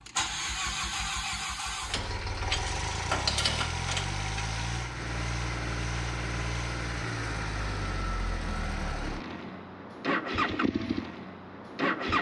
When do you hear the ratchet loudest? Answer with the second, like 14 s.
3 s.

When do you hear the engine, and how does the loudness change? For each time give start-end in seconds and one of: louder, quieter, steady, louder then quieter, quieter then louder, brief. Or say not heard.
0.0-12.1 steady.